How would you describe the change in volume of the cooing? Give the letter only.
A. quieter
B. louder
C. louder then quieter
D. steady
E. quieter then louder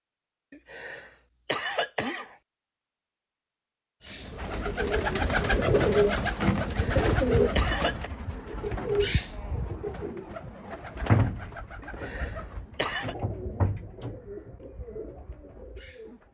A.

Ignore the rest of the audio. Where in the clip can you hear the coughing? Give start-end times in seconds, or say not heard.
0.5-2.4, 6.8-8.1, 11.8-13.2.